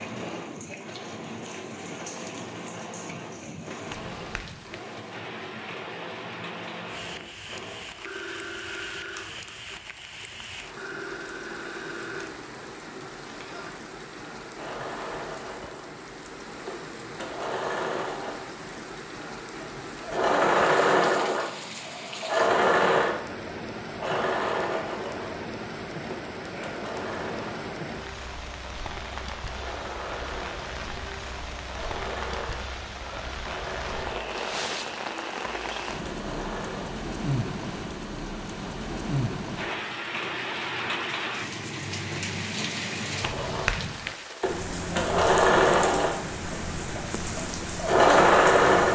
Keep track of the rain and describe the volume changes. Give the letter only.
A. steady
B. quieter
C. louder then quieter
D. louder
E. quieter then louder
D.